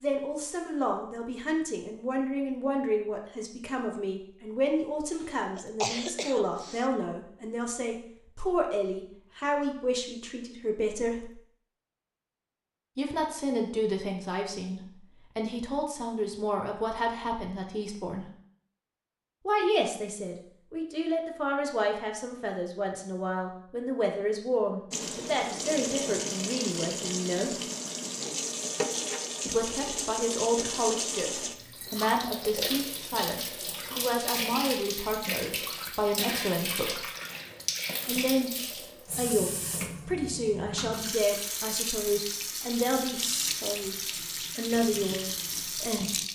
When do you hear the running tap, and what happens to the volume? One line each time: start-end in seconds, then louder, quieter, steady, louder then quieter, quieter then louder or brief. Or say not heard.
24.9-46.3 steady.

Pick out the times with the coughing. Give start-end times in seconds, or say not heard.
5.0-6.9.